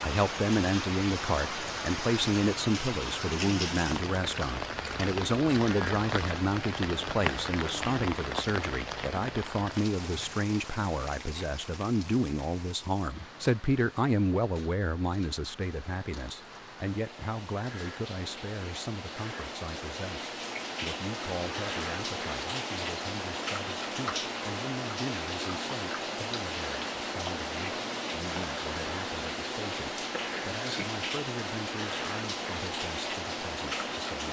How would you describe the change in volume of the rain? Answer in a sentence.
The volume of the rain goes down, then up.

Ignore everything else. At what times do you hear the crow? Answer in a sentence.
You can't hear the crow here.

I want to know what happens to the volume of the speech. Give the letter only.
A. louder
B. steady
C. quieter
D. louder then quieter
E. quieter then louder
C.